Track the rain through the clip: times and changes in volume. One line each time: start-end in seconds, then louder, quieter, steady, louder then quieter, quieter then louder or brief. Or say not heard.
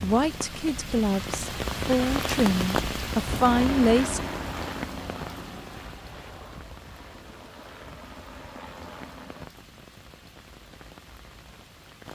0.0-12.1 quieter.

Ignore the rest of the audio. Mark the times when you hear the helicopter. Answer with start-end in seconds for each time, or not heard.
3.2-9.5.